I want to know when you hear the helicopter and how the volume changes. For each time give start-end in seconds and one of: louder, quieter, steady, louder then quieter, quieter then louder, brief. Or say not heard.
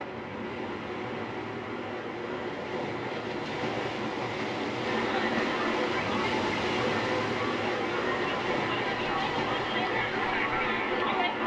not heard.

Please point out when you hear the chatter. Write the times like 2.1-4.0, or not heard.
4.8-11.4.